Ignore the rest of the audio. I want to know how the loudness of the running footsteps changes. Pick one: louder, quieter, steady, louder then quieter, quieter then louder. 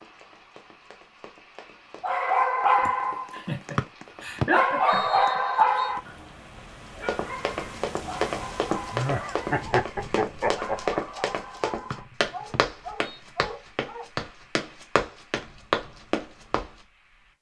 louder.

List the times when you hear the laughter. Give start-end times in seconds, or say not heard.
2.8-5.4, 8.9-11.0.